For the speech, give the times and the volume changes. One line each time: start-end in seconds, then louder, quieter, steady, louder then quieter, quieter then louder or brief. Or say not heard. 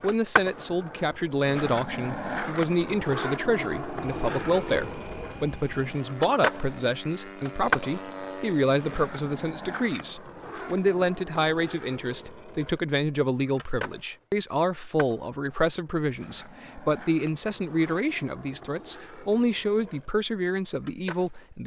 0.0-21.6 steady.